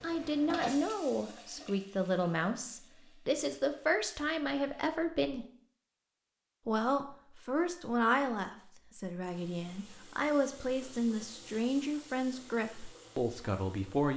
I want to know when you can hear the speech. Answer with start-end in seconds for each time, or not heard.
0.0-5.5, 6.7-14.1.